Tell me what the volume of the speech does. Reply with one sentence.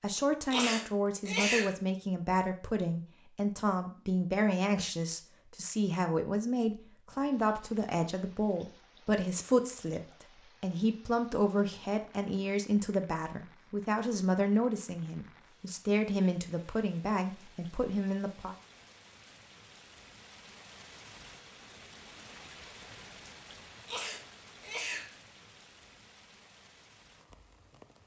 The volume of the speech stays about the same.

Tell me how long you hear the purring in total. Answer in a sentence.
You can't hear the purring here.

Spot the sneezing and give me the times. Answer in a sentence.
You can hear the sneezing from 0.5 to 1.7 s and from 23.9 to 25.1 s.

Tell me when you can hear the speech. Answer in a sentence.
You can hear the speech from 0.0 to 18.6 s.